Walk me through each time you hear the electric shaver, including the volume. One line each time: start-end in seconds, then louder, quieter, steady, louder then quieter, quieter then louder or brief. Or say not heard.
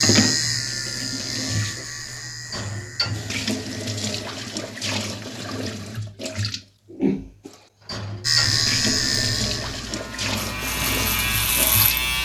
0.0-4.8 quieter
8.2-12.2 quieter then louder.